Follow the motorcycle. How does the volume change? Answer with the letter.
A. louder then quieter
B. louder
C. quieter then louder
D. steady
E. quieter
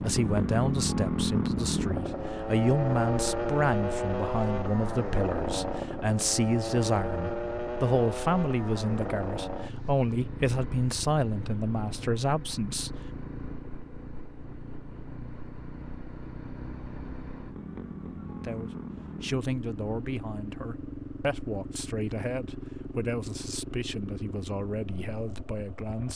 E.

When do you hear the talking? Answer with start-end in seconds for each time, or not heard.
0.0-12.9, 18.4-26.1.